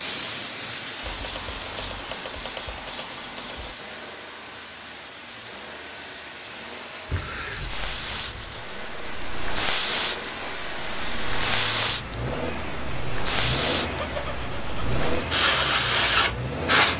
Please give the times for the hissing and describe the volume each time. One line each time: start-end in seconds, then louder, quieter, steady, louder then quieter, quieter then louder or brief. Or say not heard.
0.0-16.9 quieter then louder.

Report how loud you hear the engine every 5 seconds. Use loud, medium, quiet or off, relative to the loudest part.
medium, medium, loud, loud.